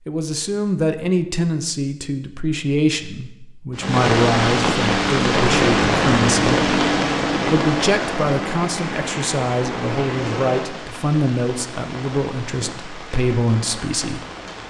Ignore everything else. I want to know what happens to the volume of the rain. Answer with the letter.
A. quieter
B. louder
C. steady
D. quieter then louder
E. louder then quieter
A.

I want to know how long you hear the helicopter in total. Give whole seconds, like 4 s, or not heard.
5 s.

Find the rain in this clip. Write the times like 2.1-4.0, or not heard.
3.8-14.6.